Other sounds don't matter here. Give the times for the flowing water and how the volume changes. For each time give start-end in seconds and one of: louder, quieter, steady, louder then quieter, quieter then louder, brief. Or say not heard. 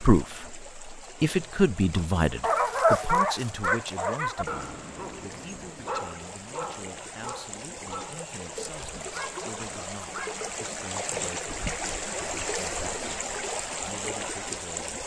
0.0-15.0 louder.